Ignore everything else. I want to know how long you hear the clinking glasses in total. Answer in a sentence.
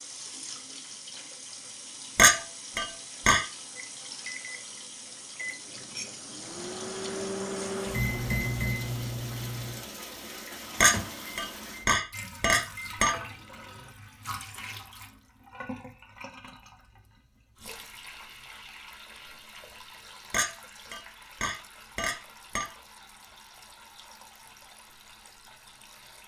The clinking glasses can be heard for 6 seconds in total.